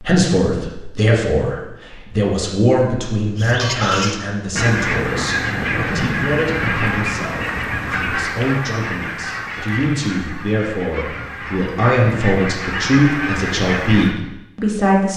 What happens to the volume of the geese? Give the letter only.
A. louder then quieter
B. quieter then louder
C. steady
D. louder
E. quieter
B.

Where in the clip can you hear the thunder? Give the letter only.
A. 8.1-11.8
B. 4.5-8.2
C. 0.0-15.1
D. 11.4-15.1
B.